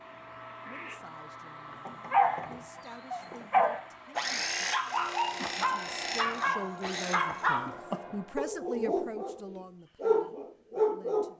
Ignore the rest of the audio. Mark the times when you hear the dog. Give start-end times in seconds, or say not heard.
1.9-11.3.